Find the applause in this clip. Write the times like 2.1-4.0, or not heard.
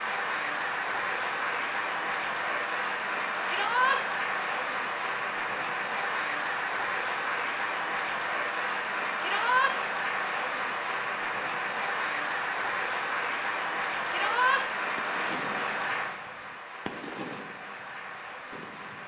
0.0-19.0.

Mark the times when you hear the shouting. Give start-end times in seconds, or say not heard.
3.5-4.0, 9.2-9.8, 14.1-14.7.